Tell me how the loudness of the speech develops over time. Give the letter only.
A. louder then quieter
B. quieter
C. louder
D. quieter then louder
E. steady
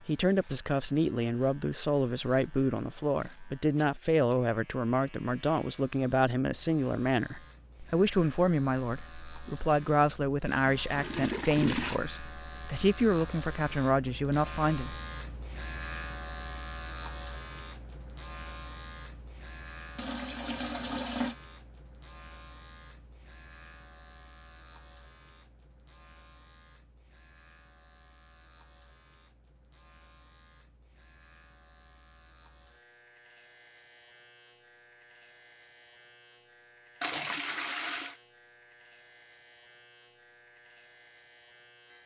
E.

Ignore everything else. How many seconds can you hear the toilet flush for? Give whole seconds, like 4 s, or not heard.
4 s.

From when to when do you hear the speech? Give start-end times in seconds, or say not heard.
0.1-14.9.